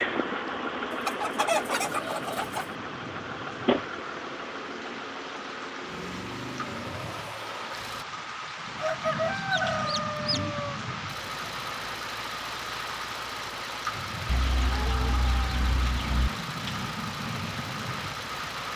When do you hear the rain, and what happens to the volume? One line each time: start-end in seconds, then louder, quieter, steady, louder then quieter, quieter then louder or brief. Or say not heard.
0.0-18.7 louder.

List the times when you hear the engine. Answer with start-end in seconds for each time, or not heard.
0.0-8.1, 11.1-18.7.